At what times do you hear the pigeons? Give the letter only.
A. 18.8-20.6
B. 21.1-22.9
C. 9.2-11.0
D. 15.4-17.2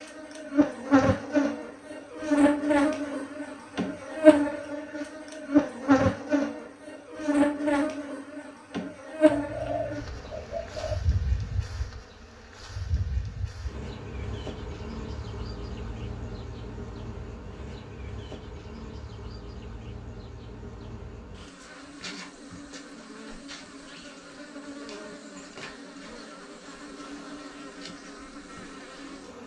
C.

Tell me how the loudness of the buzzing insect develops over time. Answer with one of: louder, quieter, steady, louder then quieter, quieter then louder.
quieter.